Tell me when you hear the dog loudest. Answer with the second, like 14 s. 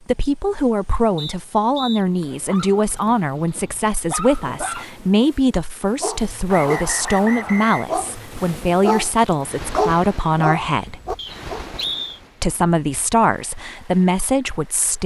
10 s.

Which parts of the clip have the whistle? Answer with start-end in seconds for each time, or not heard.
1.1-2.0, 6.5-7.8, 11.2-12.2.